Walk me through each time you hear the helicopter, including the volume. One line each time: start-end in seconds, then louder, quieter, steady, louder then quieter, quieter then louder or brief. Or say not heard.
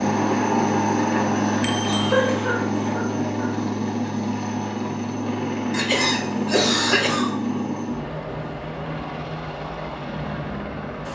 0.0-11.1 quieter.